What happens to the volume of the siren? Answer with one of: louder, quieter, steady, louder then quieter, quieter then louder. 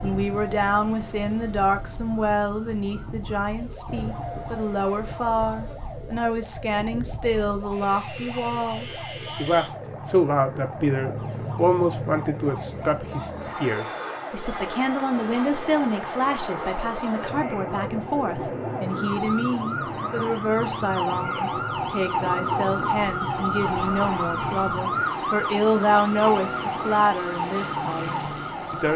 louder.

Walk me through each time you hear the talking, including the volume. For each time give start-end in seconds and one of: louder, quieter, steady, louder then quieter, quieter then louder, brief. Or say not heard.
0.0-28.9 steady.